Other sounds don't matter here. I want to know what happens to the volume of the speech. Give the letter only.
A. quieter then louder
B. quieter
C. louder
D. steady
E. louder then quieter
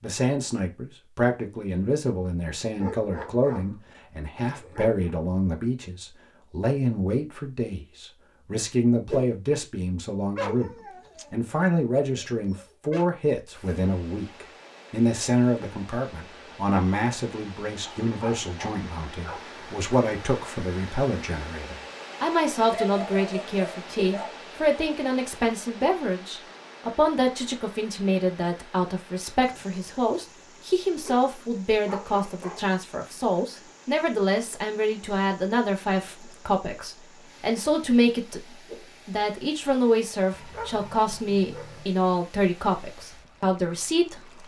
D.